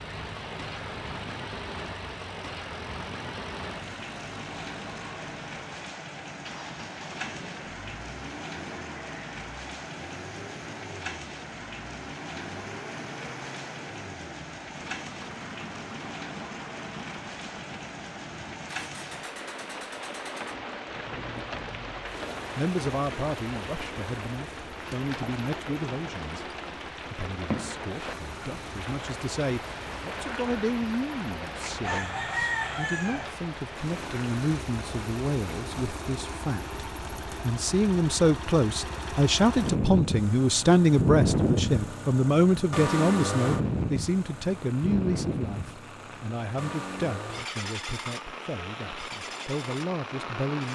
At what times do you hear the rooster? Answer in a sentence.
You can hear the rooster from 31.8 to 33.3 s.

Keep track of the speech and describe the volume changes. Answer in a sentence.
The loudness of the speech goes up, then down.